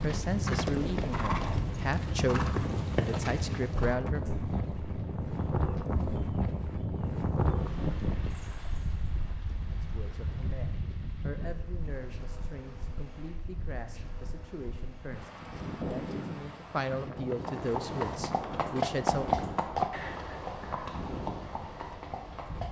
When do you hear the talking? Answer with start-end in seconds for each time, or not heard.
0.0-4.2, 9.8-19.3.